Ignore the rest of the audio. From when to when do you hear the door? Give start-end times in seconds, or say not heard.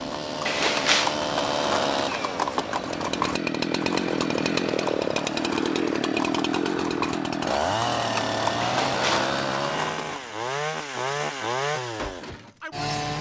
0.5-1.1, 8.6-9.3.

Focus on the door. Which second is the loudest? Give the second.
1 s.